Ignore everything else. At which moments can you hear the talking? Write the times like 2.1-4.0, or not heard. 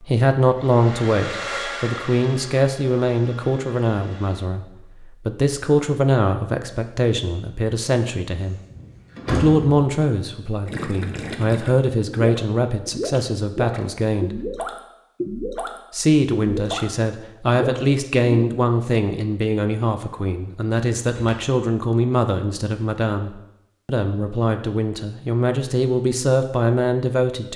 0.0-4.7, 5.2-8.6, 9.3-14.3, 15.9-27.5.